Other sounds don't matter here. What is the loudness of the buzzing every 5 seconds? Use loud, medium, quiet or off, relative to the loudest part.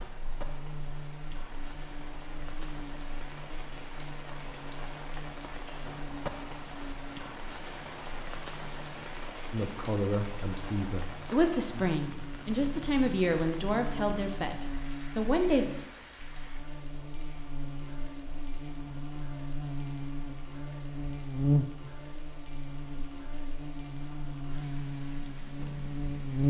quiet, quiet, quiet, quiet, medium, loud.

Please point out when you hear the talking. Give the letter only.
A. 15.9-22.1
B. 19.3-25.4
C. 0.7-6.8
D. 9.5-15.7
D.